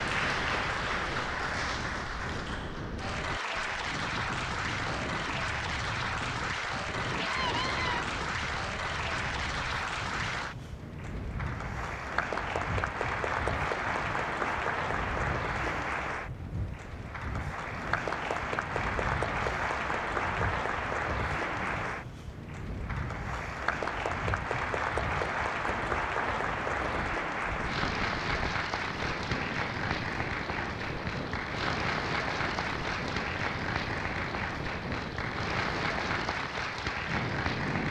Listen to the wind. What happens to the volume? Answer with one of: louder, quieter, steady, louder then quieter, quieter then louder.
steady.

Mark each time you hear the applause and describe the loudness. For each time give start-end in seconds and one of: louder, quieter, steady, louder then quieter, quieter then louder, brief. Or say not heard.
0.0-37.8 steady.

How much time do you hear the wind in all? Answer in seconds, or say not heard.
38 s.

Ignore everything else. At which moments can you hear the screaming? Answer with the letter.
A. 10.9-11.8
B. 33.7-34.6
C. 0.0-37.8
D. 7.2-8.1
D.